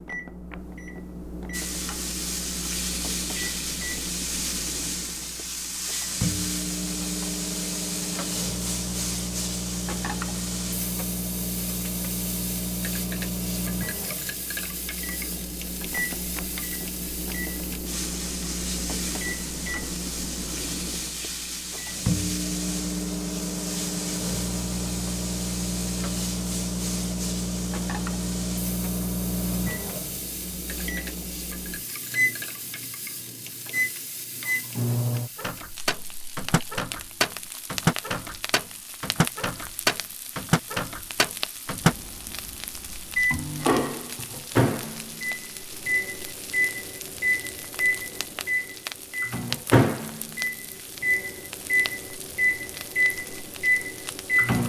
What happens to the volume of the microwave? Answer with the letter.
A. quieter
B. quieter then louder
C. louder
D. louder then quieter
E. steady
C.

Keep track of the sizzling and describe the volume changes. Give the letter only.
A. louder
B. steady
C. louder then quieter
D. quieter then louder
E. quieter
E.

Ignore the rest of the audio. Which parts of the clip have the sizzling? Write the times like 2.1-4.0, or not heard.
1.5-54.6.